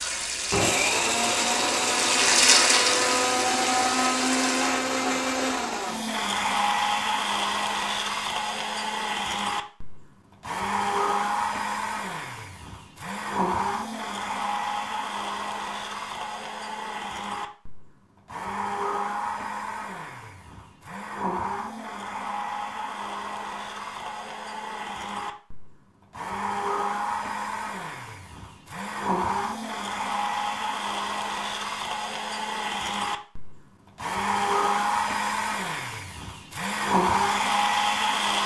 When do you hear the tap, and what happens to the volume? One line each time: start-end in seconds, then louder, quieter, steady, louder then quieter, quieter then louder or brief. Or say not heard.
0.0-4.8 louder then quieter.